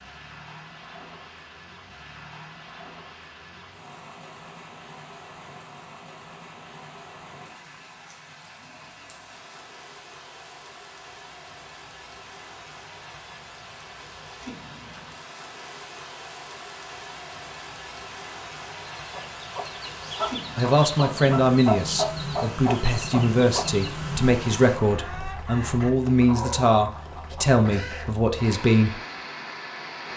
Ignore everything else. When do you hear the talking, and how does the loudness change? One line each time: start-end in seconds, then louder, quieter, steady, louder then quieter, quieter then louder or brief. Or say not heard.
20.6-28.9 steady.